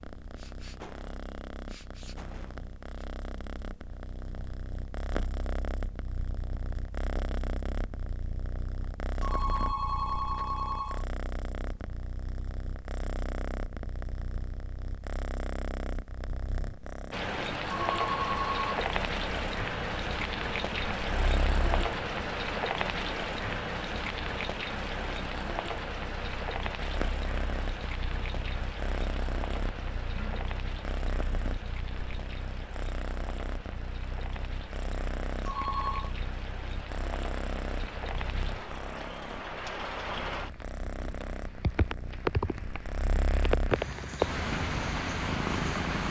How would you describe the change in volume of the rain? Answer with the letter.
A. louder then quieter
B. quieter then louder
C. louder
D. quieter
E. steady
B.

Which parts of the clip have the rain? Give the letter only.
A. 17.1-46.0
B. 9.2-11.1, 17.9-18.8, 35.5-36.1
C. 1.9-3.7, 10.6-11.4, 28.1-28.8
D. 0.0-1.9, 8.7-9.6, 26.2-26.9
A.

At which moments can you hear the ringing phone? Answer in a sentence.
You can hear the ringing phone from 9.2 to 11.1 s, from 17.9 to 18.8 s and from 35.5 to 36.1 s.